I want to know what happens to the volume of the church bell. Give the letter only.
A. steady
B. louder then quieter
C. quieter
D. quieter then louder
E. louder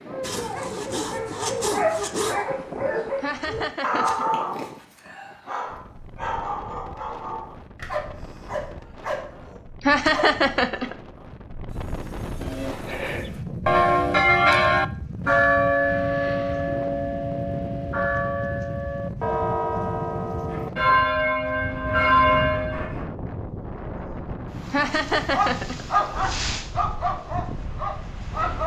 D.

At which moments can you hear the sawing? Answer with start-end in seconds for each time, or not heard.
0.2-2.4, 11.7-13.4, 20.4-23.1.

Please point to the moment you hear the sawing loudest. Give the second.
2 s.